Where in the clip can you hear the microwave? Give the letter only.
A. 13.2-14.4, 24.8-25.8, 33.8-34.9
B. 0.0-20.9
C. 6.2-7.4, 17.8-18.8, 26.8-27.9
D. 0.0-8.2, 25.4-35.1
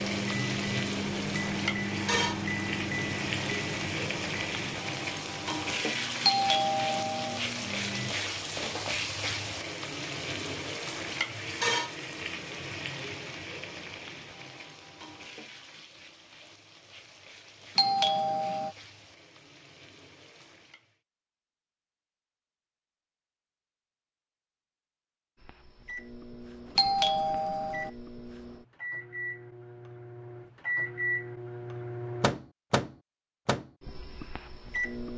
D.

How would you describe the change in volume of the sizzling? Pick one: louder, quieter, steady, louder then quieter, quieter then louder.
quieter.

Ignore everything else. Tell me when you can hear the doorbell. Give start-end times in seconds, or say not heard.
6.2-7.4, 17.8-18.8, 26.8-27.9.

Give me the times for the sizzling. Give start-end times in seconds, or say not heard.
0.0-20.9.